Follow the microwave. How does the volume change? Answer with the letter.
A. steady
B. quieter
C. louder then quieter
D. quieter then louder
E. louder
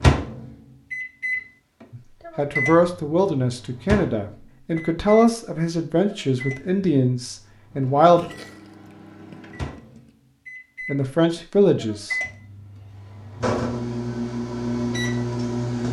D.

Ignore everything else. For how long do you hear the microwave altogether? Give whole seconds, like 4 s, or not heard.
16 s.